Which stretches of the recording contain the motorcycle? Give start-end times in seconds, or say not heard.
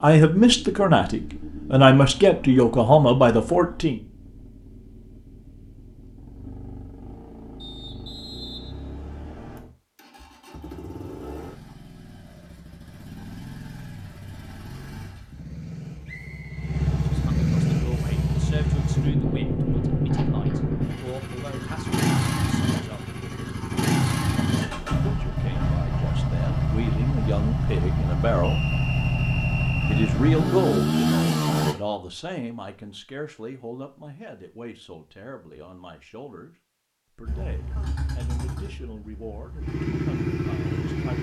0.1-31.8, 37.2-41.1.